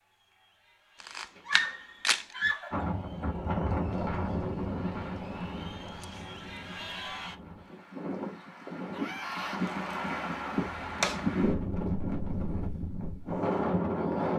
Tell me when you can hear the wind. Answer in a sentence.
The wind can be heard from 2.7 to 14.3 s.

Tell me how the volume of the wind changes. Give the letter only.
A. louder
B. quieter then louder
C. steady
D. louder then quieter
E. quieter
B.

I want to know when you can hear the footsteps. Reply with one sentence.
You can't hear the footsteps here.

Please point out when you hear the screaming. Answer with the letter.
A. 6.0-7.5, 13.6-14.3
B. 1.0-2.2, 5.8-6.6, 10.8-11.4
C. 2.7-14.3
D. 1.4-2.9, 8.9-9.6
D.